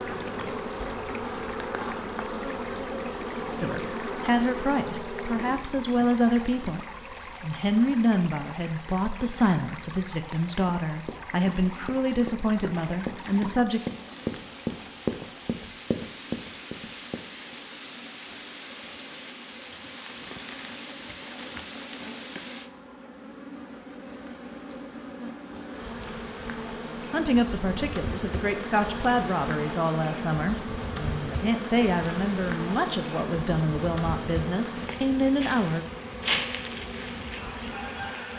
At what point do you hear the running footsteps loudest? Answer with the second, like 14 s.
15 s.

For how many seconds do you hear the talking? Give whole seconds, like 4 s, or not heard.
19 s.